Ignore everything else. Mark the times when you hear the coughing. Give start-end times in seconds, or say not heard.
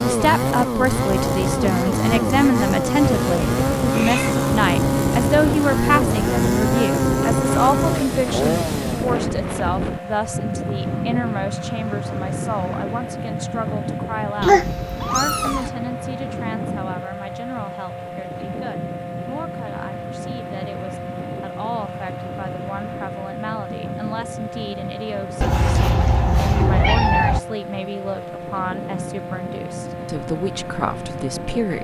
not heard.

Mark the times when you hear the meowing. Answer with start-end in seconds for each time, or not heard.
3.0-4.6, 14.4-15.7, 25.4-27.4.